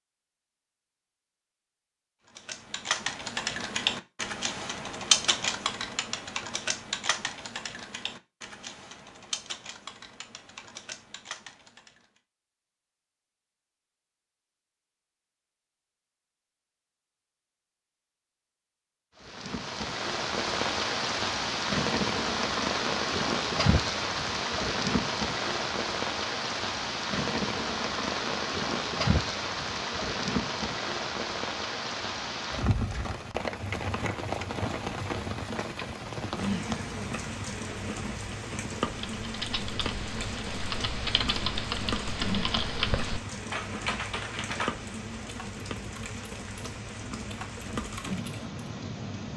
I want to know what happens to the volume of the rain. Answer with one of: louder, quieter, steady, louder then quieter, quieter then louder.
quieter.